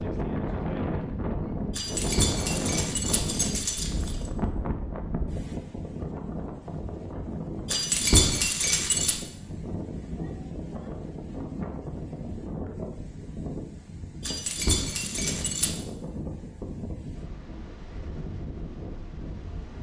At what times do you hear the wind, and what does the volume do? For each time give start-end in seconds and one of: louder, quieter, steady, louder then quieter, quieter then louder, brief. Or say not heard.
0.0-19.7 quieter.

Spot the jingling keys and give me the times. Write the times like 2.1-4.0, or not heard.
1.8-4.3, 7.7-9.2, 14.2-15.8.